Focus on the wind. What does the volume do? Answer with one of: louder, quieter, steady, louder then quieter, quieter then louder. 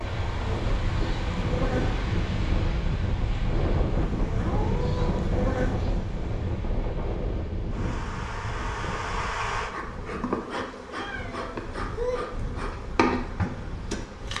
quieter.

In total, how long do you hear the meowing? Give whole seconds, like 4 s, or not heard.
2 s.